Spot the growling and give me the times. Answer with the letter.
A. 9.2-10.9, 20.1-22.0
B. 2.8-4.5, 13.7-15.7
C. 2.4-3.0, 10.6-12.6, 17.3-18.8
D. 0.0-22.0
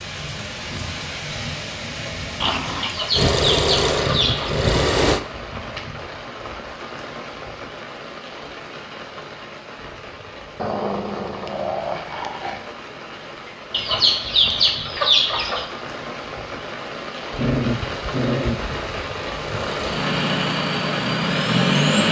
C.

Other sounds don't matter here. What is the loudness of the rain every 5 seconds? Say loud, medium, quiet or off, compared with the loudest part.
loud, medium, medium, loud, loud.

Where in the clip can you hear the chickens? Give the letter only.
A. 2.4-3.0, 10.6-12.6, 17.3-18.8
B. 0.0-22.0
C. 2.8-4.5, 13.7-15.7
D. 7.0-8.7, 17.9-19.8
C.